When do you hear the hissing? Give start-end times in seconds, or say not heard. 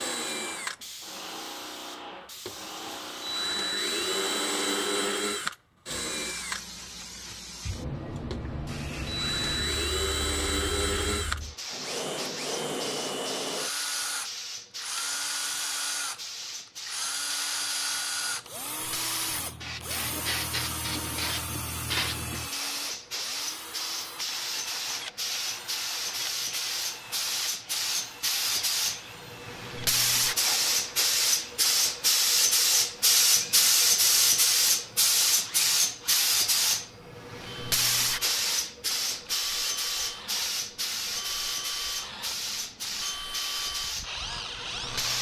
0.0-45.1.